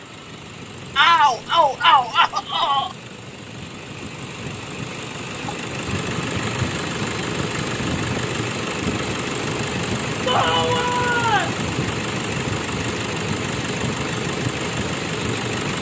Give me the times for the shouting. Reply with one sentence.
You can hear the shouting from 0.9 to 3.0 s and from 10.2 to 11.6 s.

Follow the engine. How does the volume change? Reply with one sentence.
The loudness of the engine goes up.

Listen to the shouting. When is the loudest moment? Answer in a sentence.
The loudest moment of the shouting is at 1 second.